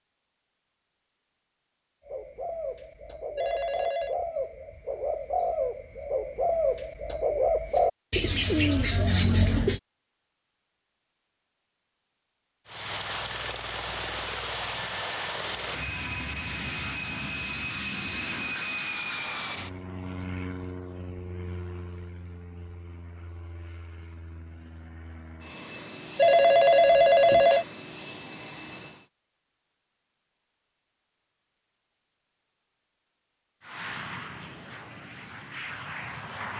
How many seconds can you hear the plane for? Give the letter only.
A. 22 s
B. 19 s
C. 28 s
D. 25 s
B.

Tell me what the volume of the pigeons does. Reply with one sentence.
The loudness of the pigeons goes up.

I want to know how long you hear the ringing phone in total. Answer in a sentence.
You can hear the ringing phone for 2 seconds altogether.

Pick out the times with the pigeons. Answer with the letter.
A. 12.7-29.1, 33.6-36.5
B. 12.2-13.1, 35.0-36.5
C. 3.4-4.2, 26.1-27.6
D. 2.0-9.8
D.